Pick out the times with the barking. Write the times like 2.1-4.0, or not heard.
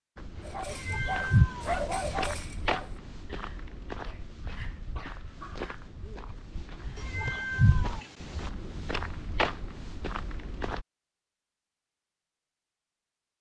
0.4-7.0.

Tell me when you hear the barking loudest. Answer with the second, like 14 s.
2 s.